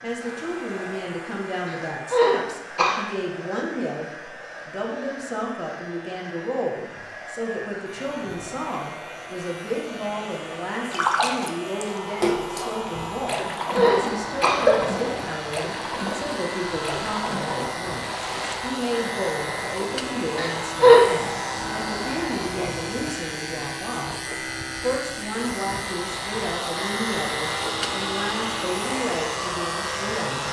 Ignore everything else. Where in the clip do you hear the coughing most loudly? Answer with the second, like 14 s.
21 s.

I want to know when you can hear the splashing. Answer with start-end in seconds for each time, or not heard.
10.9-18.6.